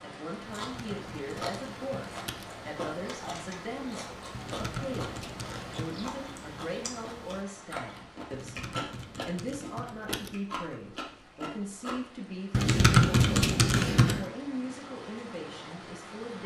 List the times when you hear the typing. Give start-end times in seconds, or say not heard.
0.5-2.5, 4.3-6.0, 8.3-10.3, 12.5-14.2.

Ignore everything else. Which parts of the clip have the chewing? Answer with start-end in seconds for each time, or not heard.
0.4-12.0.